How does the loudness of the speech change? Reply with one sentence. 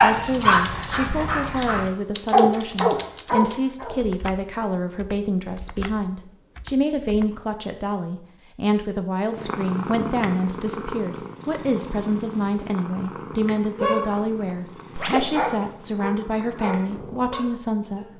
The volume of the speech stays about the same.